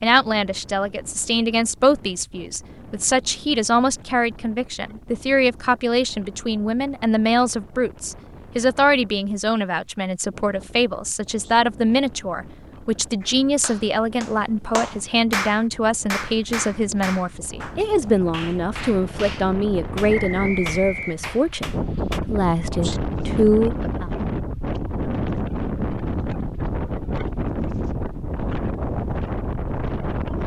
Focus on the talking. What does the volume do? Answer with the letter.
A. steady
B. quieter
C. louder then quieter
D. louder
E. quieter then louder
A.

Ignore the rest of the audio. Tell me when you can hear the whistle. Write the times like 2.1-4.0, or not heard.
20.1-21.2.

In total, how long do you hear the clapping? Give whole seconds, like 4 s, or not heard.
9 s.